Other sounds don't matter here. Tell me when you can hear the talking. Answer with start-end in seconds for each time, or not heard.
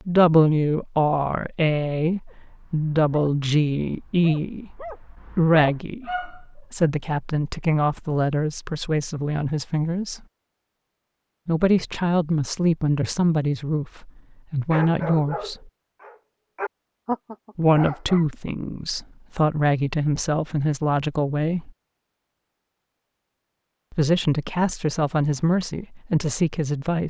0.1-10.2, 11.4-15.6, 17.6-21.7, 23.9-27.0.